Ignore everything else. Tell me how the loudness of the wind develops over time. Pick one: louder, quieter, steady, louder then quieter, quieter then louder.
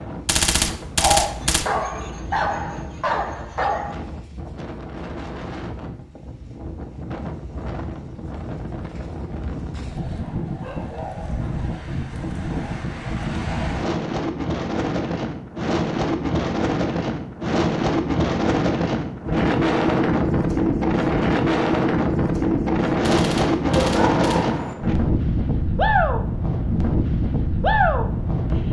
louder.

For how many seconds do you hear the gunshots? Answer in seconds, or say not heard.
3 s.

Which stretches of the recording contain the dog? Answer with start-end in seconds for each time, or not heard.
0.9-4.0, 10.6-11.6, 23.6-24.8.